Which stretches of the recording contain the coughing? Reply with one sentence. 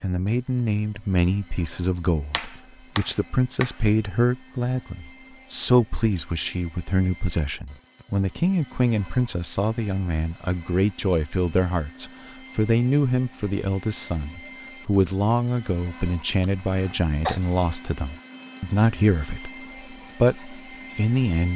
You can hear the coughing from 16.4 to 17.4 s.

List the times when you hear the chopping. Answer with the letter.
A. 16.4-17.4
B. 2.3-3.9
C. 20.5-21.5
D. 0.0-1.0
B.